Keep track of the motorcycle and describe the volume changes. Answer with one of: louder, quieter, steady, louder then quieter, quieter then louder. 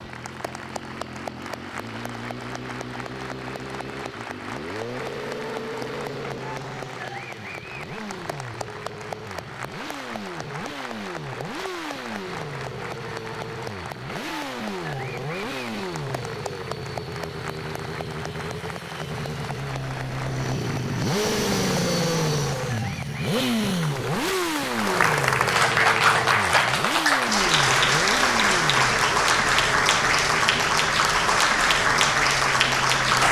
louder then quieter.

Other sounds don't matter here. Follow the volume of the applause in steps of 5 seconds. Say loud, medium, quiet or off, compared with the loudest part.
quiet, quiet, quiet, quiet, quiet, loud, loud.